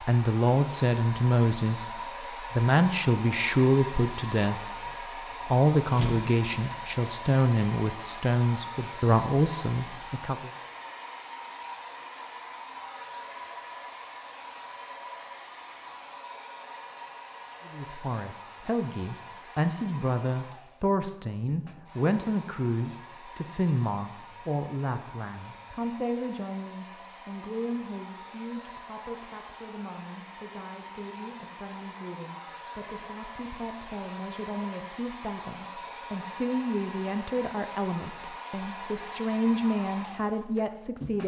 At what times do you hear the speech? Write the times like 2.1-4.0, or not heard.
0.0-10.5, 17.6-41.2.